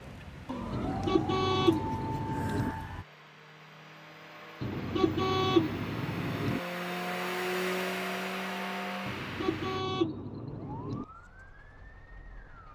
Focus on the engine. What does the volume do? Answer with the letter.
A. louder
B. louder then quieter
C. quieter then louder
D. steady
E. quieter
A.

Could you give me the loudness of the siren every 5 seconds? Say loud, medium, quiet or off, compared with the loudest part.
loud, off, quiet.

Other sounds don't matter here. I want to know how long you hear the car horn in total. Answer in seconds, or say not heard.
6 s.